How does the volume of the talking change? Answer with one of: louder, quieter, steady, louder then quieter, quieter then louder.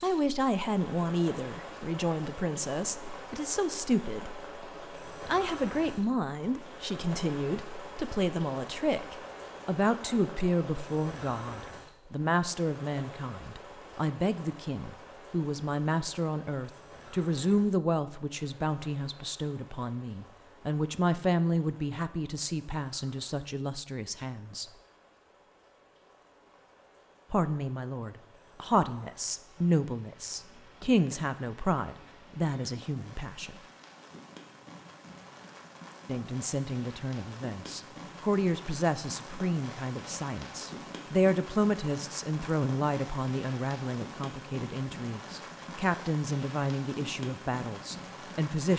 steady.